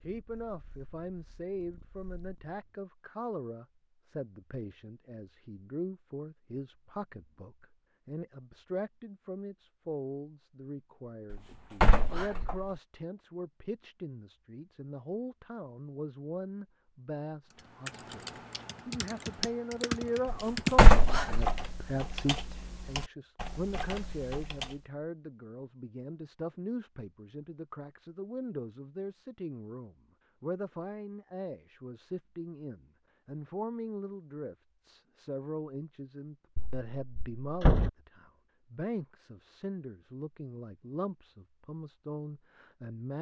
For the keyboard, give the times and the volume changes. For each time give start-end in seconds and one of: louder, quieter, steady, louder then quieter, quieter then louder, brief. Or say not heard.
17.6-24.9 louder then quieter.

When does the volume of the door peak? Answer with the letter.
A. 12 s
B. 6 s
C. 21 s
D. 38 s
C.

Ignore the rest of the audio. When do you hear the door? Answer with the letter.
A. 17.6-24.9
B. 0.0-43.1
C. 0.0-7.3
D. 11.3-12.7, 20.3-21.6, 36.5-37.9
D.